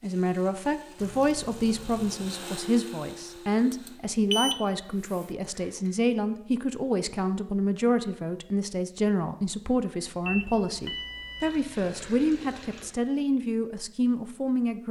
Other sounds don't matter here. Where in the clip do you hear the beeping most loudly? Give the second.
4 s.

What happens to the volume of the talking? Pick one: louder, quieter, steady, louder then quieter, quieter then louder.
steady.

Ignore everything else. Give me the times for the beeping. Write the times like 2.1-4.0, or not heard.
3.7-4.7, 10.2-11.6.